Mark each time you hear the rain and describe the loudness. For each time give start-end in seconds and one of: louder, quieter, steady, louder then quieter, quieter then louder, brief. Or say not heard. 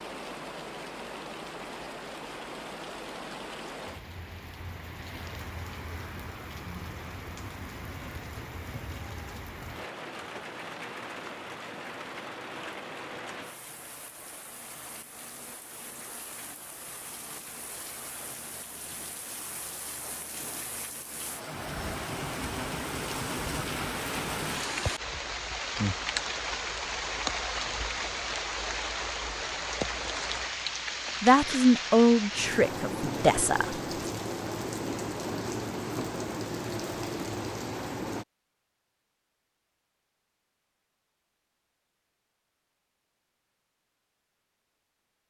0.0-38.2 louder.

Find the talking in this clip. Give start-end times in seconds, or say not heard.
31.2-33.8.